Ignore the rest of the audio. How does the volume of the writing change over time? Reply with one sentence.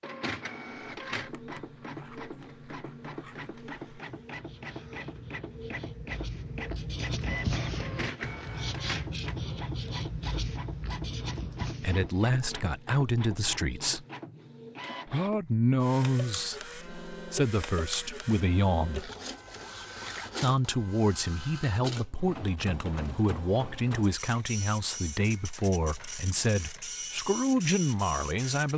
The loudness of the writing goes up.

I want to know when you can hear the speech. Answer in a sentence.
The speech can be heard from 11.8 to 14.1 s, from 15.1 to 19.1 s and from 20.4 to 28.7 s.